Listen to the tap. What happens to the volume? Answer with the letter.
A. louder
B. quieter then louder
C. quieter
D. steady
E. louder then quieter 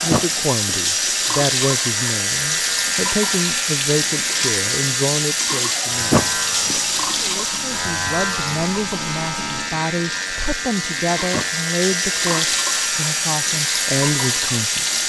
B.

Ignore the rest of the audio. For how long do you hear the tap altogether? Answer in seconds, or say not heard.
15 s.